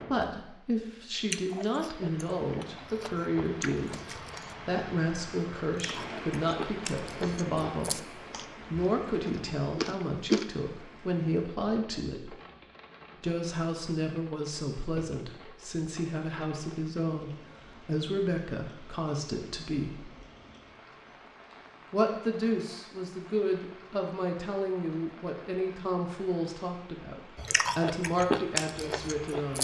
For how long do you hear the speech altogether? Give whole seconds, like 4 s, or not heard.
27 s.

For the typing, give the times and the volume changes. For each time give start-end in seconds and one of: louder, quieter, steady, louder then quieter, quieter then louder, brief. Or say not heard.
not heard.